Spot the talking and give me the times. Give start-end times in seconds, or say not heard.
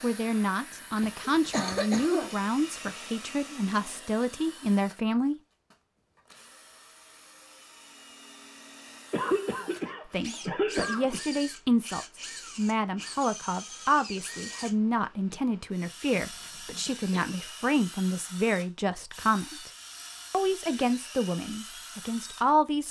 0.0-5.3, 10.1-19.7, 20.3-22.8.